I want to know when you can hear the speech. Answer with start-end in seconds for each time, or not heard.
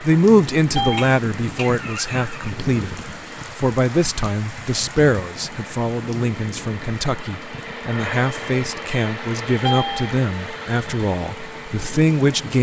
0.0-12.5.